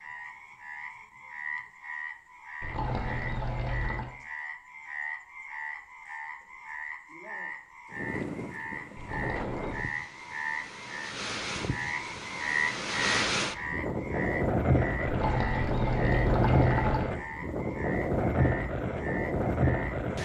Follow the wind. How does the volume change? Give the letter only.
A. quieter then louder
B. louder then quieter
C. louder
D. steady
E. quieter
C.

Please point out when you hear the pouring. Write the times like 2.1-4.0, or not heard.
2.6-4.1, 8.9-9.9, 15.1-17.1.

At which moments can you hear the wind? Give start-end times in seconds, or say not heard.
7.9-20.1.